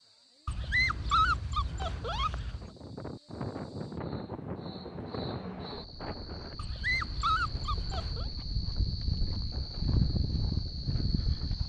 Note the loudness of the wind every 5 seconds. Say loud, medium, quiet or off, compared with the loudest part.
loud, medium, quiet.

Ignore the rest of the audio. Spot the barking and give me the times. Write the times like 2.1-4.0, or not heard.
0.5-2.7, 6.5-8.2.